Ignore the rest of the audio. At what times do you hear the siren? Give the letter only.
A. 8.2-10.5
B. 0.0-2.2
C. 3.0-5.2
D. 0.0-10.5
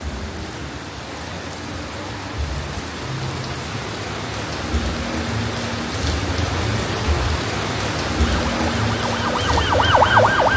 A.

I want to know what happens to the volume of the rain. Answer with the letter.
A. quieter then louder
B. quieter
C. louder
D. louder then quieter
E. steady
C.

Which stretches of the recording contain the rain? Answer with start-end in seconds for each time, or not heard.
0.0-10.5.